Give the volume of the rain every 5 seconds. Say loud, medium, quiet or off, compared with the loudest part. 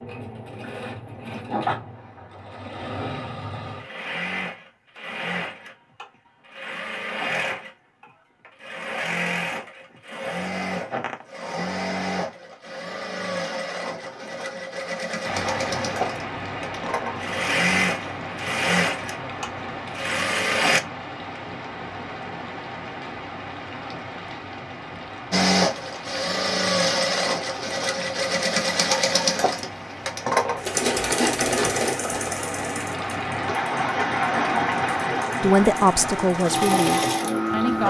off, off, off, medium, medium, medium, loud, loud.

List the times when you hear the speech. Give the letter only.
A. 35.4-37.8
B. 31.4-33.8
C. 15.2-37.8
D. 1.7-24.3
A.